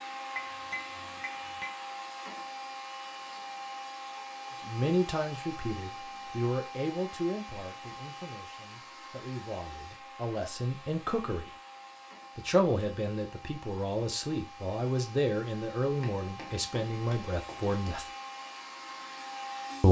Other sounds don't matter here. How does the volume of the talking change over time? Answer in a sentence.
The volume of the talking goes down, then up.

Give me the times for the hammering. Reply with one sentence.
You can hear the hammering from 0.3 to 1.8 s and from 16.0 to 17.9 s.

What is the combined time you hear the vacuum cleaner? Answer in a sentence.
You can hear the vacuum cleaner for 20 seconds altogether.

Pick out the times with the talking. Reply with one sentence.
The talking can be heard from 4.7 to 11.6 s and from 12.3 to 18.1 s.